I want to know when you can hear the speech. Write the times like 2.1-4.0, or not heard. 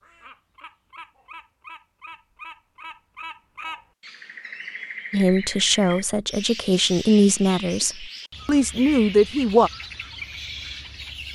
5.1-9.7.